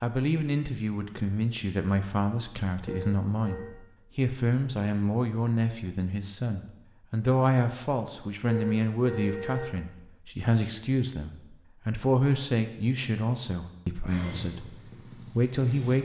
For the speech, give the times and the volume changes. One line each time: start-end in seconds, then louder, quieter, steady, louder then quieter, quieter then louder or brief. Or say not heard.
0.0-15.9 steady.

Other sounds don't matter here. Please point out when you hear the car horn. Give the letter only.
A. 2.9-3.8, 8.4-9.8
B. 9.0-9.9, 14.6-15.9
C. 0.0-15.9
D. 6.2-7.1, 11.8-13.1
A.